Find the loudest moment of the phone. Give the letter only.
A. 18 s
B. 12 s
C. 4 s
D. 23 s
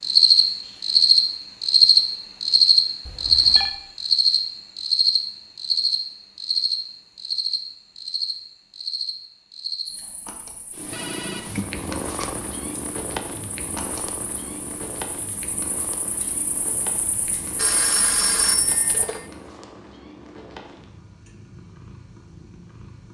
A.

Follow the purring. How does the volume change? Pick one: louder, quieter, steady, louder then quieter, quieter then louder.
quieter.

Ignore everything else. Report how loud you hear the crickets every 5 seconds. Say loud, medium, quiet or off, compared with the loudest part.
loud, medium, quiet, quiet, off.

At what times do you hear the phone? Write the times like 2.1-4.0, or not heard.
3.0-3.8, 10.8-12.4, 17.6-19.2.